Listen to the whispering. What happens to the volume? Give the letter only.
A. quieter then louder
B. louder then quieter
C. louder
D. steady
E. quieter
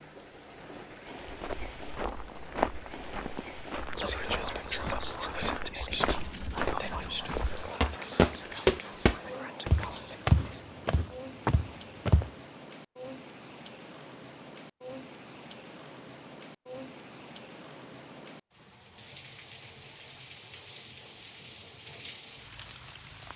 E.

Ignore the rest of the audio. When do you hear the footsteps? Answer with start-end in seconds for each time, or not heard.
1.2-12.3.